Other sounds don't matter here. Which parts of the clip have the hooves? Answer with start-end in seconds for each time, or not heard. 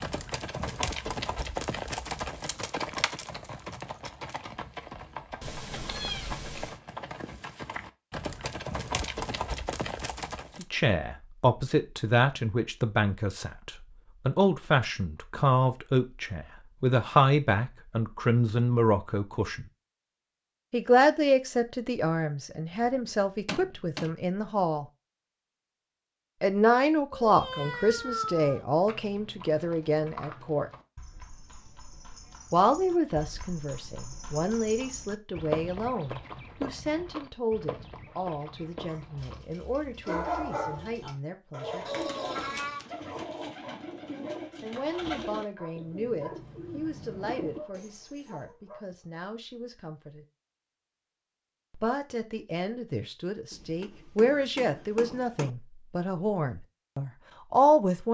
0.0-10.7, 27.6-39.5.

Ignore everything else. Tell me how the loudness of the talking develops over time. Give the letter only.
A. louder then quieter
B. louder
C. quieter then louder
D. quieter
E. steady
C.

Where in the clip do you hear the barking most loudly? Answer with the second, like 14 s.
40 s.